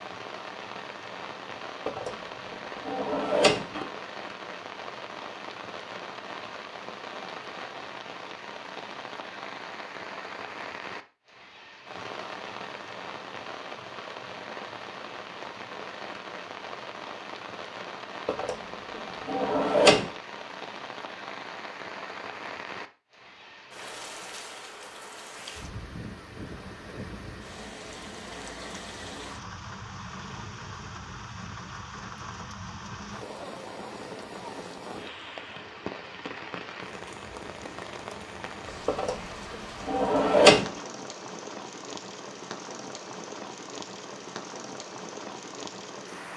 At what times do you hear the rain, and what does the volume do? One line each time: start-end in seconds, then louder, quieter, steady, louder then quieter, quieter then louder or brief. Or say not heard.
0.0-46.3 steady.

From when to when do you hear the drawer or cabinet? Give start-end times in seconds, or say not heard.
1.9-3.9, 18.2-20.1, 38.9-40.8.